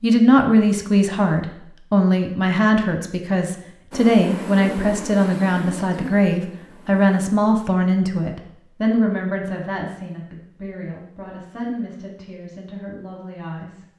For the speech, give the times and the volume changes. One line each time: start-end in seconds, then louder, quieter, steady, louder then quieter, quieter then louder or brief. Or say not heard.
0.0-13.8 quieter.